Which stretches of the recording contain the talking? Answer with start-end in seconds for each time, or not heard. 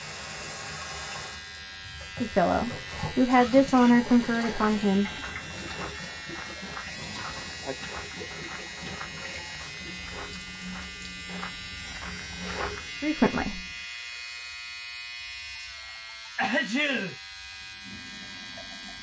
2.2-5.1, 13.0-13.6.